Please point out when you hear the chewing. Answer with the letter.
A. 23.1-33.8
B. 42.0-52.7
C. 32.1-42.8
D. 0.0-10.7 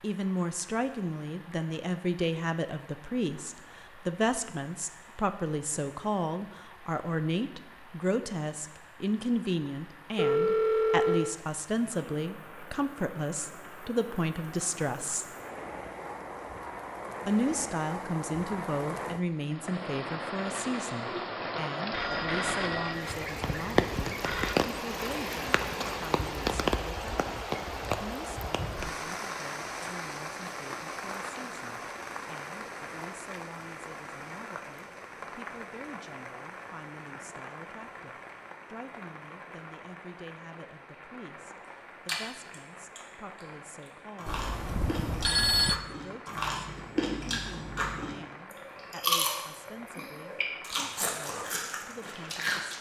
B.